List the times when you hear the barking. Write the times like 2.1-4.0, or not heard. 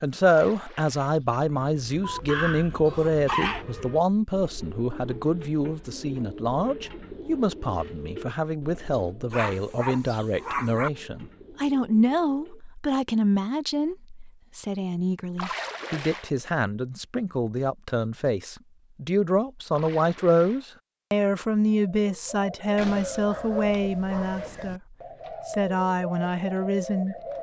2.0-3.6, 9.3-10.9, 22.8-24.8.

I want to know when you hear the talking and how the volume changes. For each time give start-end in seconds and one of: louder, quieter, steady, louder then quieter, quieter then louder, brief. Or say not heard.
0.0-27.1 steady.